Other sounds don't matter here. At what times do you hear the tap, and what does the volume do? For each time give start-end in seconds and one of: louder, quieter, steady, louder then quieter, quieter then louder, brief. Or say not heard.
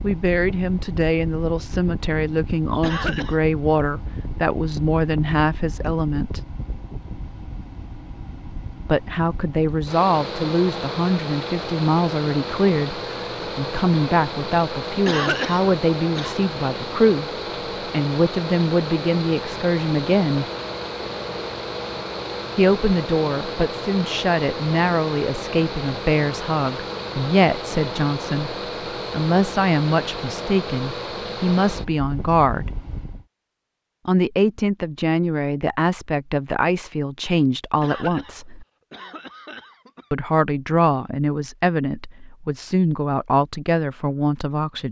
not heard.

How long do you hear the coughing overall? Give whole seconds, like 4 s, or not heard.
4 s.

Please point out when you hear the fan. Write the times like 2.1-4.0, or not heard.
0.0-33.2.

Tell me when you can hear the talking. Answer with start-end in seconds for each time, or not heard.
0.0-6.4, 8.8-20.4, 22.6-32.8, 34.0-38.6, 40.1-44.8.